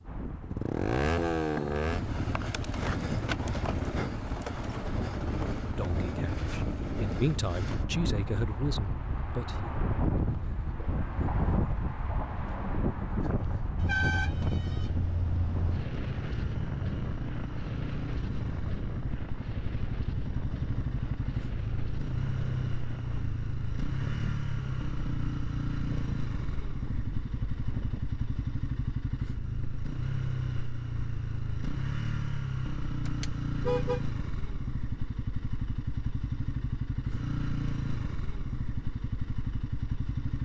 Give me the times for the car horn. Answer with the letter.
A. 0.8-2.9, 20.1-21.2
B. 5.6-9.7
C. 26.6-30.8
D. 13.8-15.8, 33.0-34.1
D.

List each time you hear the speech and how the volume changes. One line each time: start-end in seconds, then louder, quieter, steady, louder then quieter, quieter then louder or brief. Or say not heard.
5.6-9.7 louder then quieter.